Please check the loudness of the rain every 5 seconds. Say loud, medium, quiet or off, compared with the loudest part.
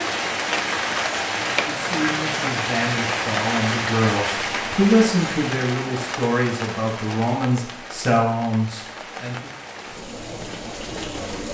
loud, medium, medium.